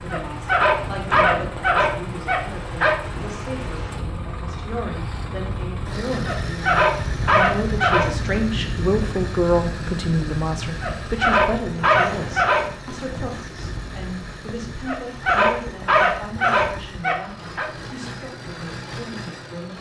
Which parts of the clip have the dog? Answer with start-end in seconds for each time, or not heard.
0.1-3.0, 6.2-8.1, 10.8-12.7, 14.8-17.7.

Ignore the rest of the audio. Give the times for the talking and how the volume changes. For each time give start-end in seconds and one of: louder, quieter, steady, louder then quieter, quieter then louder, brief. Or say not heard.
0.0-19.7 louder then quieter.